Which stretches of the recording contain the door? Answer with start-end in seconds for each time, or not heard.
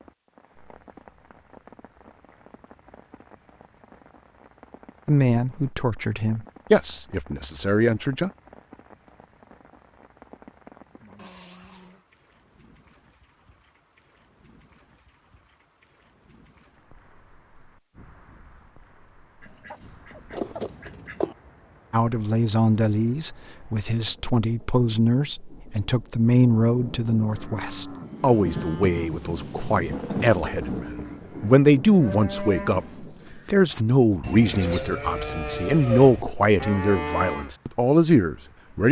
not heard.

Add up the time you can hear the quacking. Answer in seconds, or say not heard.
2 s.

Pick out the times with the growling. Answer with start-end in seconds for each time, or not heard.
11.2-12.1.